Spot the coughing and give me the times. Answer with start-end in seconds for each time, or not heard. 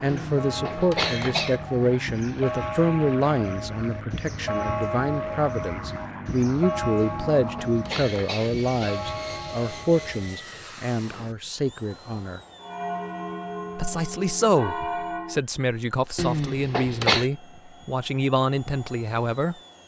0.1-1.6, 7.0-9.0, 16.1-17.3.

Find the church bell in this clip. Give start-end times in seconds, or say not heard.
0.2-10.4, 12.6-15.4.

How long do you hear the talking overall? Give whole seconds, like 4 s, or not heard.
18 s.